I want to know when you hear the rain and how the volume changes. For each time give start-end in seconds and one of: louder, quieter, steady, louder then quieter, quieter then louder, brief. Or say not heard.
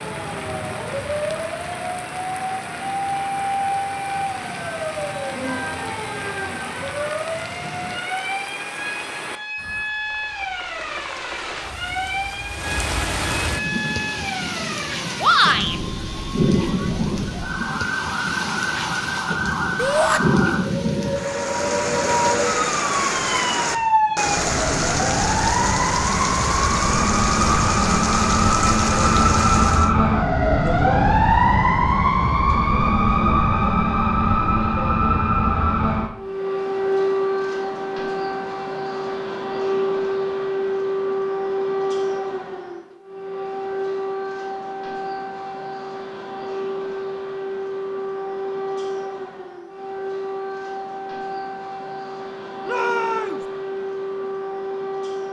0.0-29.9 louder.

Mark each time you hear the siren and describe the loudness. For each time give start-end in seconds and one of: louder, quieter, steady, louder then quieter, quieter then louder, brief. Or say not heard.
0.0-55.2 louder then quieter.